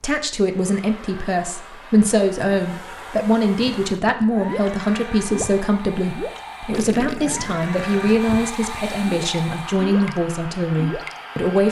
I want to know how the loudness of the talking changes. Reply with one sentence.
The loudness of the talking stays about the same.